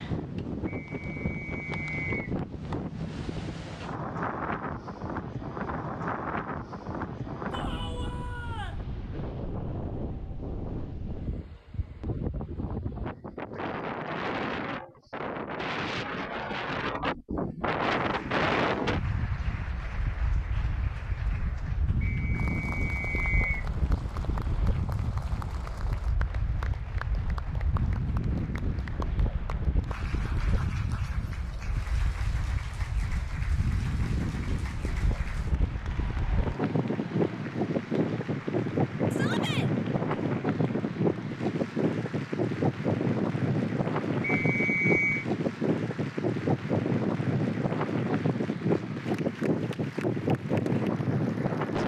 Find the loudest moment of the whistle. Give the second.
45 s.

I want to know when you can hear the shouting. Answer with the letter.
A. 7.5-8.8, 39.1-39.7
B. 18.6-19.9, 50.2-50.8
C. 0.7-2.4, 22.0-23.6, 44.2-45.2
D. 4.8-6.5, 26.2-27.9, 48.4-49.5
A.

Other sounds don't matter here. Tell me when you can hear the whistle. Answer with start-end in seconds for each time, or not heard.
0.7-2.4, 22.0-23.6, 44.2-45.2.